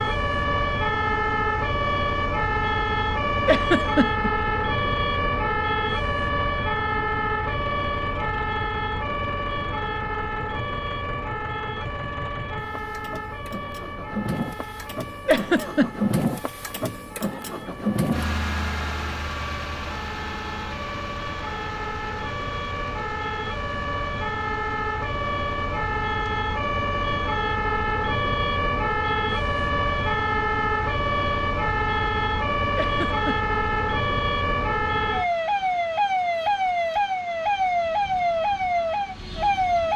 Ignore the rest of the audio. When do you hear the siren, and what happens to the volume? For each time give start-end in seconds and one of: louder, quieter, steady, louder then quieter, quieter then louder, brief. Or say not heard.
0.0-39.9 quieter then louder.